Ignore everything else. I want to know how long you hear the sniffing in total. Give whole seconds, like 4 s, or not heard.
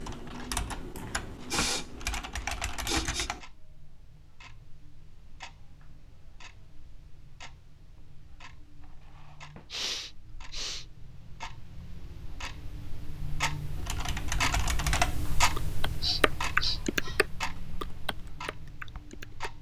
5 s.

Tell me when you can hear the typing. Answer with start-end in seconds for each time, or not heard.
0.0-3.4, 13.8-19.5.